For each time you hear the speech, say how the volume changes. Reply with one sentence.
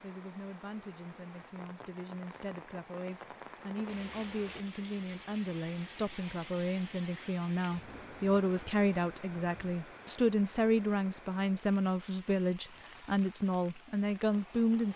You can hear the speech from 0.0 to 14.9 s, getting louder.